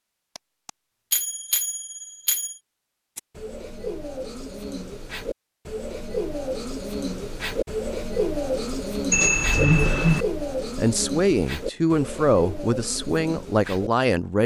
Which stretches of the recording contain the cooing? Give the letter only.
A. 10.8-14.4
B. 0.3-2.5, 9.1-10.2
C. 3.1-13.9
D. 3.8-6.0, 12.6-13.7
C.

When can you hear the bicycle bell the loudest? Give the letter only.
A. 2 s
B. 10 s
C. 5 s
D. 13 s
B.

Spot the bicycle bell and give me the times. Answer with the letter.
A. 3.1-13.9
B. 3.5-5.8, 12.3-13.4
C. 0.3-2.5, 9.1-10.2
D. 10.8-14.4
C.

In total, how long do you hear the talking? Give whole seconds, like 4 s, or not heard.
4 s.